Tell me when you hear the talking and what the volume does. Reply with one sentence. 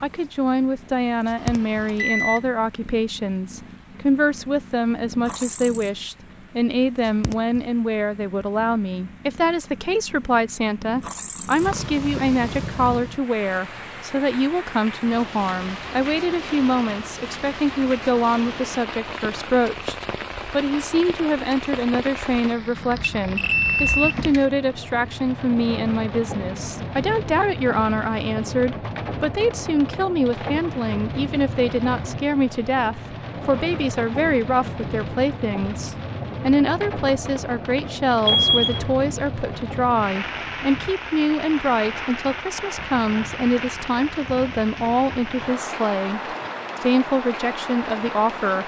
You can hear the talking from 0.0 to 48.6 s, at a steady volume.